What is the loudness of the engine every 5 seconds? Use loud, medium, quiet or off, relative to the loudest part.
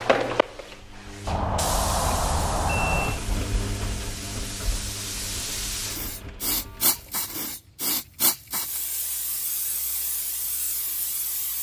loud, medium, off.